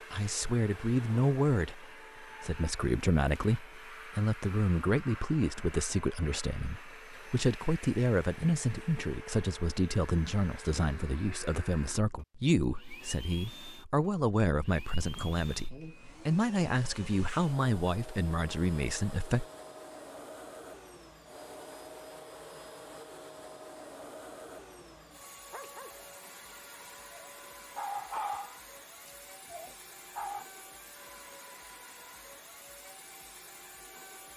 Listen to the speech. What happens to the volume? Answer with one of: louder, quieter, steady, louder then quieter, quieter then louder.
steady.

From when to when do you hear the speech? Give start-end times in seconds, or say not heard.
0.1-19.4.